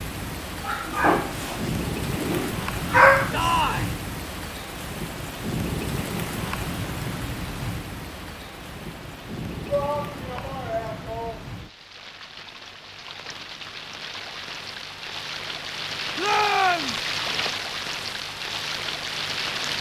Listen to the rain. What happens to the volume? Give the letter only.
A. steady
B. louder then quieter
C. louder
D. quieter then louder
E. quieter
D.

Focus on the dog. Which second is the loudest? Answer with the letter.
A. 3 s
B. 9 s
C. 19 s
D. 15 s
A.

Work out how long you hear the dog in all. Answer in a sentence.
The dog can be heard for 3 seconds in total.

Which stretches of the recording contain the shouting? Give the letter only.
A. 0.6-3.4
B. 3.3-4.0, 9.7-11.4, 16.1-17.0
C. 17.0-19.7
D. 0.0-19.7
B.